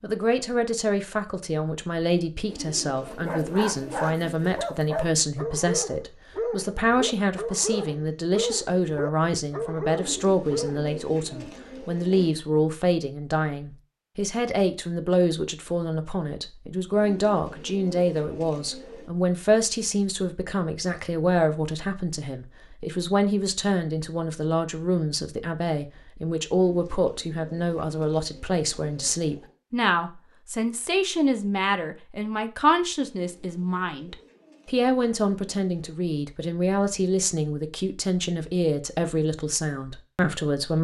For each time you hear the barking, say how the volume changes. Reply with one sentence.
The barking can be heard from 3.0 to 10.9 s, at a steady volume.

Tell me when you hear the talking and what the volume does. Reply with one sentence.
You can hear the talking from 0.0 to 40.7 s, at a steady volume.